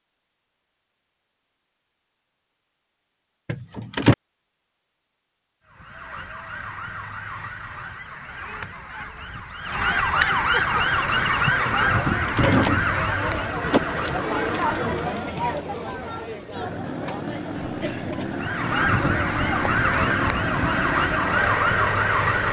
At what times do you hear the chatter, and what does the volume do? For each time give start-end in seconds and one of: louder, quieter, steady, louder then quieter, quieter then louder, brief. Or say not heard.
10.7-22.4 louder then quieter.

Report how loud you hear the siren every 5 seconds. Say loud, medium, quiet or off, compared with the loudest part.
off, medium, loud, loud, loud.